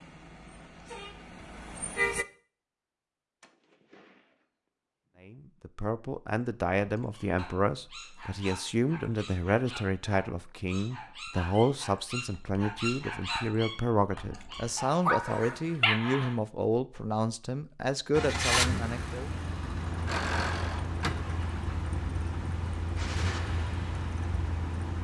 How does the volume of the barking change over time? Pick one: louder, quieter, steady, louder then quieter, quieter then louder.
louder.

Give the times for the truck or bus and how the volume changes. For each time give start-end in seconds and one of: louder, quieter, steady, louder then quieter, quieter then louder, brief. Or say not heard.
0.0-2.2 brief
18.1-24.9 quieter.